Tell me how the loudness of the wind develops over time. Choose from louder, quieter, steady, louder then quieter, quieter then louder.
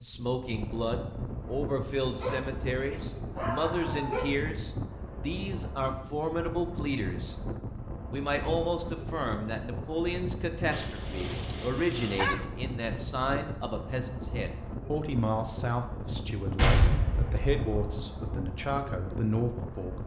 steady.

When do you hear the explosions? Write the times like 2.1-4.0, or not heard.
16.6-17.9.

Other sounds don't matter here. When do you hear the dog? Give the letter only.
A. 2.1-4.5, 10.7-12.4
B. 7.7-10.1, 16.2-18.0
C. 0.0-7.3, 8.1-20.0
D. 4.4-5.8
A.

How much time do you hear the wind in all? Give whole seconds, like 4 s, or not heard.
20 s.